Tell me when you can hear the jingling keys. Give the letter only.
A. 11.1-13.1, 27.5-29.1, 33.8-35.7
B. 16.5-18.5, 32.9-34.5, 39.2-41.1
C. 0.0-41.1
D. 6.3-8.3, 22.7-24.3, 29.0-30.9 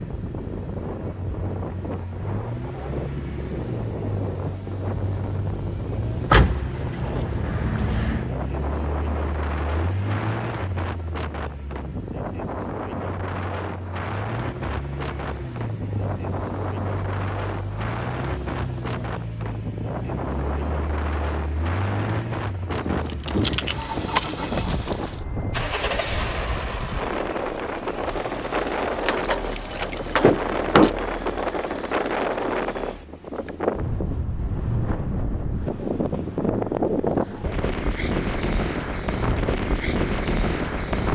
D.